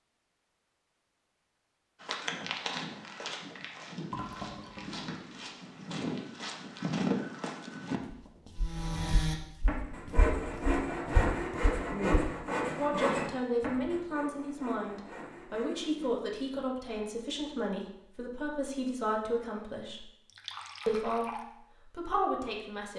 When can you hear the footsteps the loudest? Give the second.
7 s.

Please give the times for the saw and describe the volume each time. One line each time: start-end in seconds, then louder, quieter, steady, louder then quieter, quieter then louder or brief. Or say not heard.
8.6-16.1 quieter.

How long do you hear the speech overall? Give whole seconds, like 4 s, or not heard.
9 s.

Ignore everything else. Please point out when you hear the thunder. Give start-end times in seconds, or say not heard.
not heard.